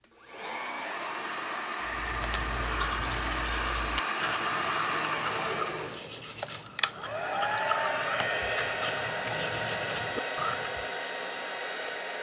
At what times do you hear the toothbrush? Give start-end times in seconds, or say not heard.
1.9-10.9.